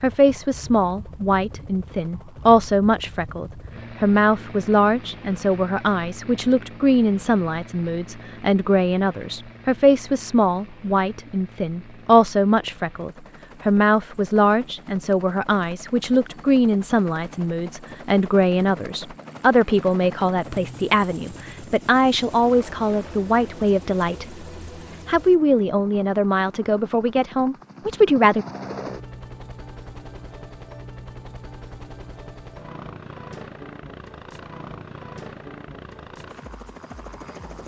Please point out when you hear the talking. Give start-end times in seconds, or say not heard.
0.0-24.4, 25.1-28.4.